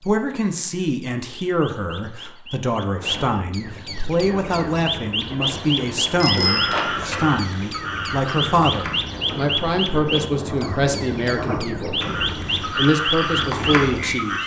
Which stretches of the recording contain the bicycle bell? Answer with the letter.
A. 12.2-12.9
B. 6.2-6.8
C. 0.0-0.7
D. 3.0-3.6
B.